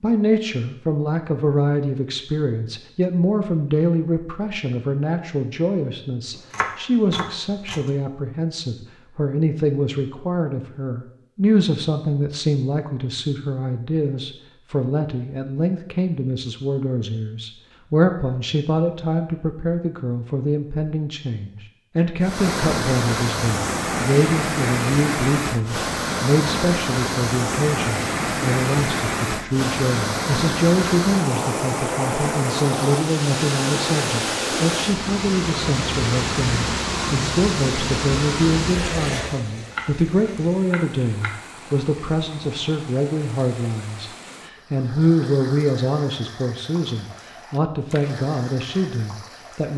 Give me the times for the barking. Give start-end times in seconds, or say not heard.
not heard.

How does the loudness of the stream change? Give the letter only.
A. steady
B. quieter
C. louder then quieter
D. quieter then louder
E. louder
B.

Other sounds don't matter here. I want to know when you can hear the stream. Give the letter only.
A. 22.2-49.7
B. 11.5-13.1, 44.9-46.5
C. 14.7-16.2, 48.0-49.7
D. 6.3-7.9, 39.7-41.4
A.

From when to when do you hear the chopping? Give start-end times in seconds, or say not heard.
6.3-7.9, 39.7-41.4.